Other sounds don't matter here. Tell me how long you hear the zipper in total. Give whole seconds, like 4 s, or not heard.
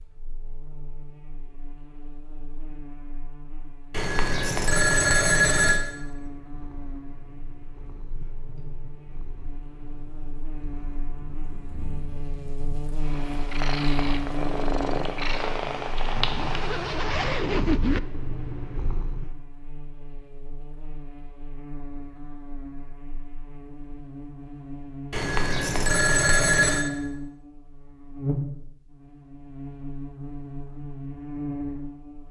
2 s.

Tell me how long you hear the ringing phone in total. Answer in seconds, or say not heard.
4 s.